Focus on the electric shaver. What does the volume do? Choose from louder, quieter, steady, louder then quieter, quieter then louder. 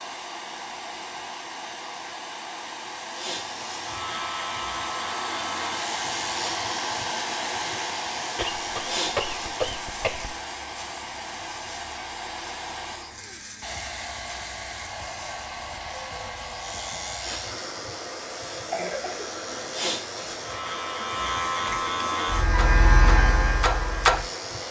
quieter then louder.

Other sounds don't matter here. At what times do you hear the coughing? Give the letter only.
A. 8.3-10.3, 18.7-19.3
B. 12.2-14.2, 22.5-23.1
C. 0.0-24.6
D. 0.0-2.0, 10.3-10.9
A.